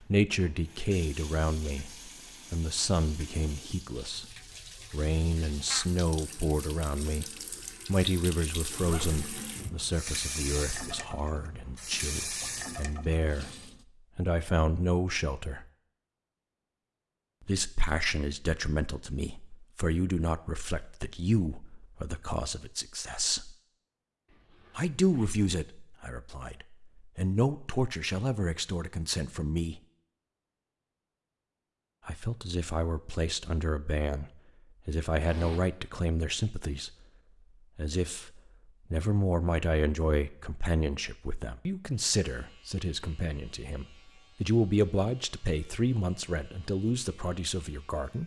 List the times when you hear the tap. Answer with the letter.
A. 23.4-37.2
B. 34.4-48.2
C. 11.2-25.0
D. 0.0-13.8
D.